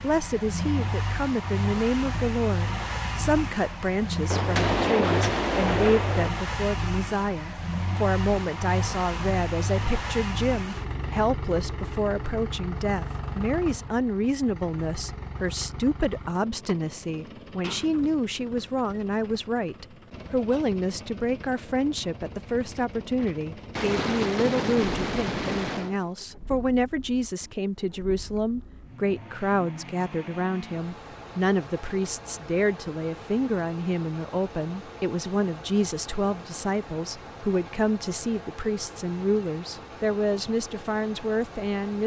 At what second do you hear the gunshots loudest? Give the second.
5 s.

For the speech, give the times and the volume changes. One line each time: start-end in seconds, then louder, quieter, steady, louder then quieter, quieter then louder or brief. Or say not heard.
0.0-42.0 steady.